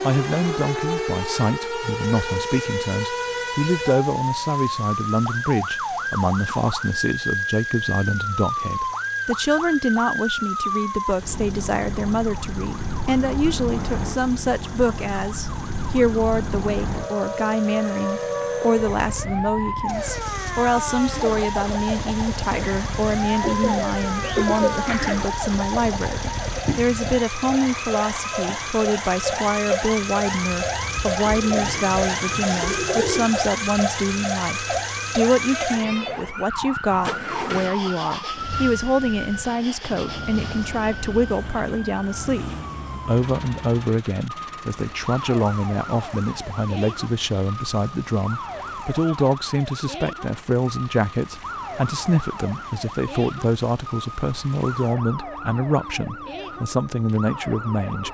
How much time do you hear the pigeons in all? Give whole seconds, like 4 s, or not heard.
5 s.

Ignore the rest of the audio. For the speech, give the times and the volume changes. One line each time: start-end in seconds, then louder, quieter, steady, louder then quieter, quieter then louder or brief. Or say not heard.
0.0-58.0 steady.